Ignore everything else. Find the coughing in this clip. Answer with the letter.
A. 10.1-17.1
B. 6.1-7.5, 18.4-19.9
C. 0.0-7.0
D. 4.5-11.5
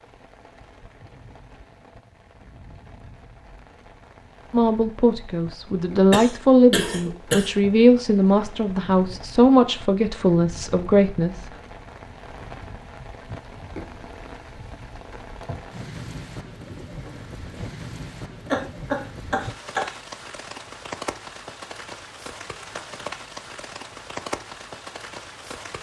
B.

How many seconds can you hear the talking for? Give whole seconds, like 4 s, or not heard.
7 s.